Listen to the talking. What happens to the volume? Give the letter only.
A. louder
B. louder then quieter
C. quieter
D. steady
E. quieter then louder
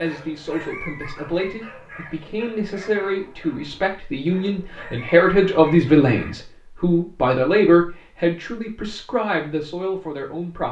B.